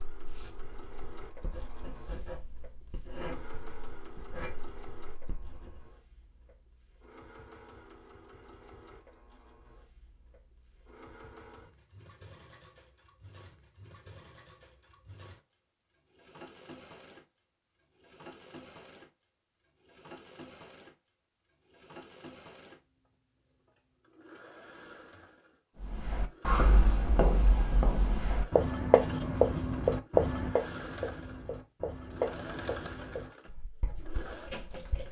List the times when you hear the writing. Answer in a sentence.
You can hear the writing from 0.1 to 5.8 s and from 25.8 to 35.0 s.